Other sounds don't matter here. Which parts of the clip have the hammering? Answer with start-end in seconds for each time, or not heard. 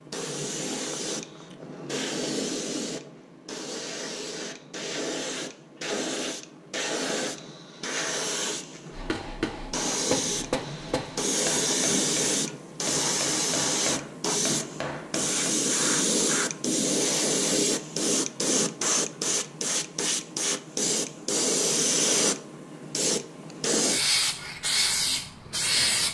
8.9-15.6.